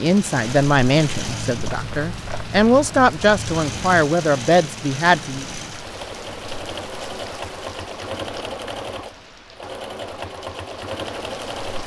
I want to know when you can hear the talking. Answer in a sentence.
The talking can be heard from 0.0 to 5.5 s.